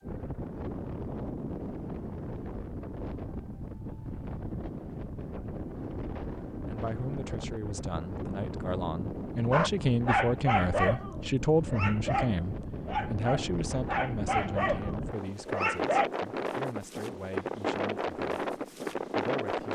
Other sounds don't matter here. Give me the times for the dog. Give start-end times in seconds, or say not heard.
9.5-16.1.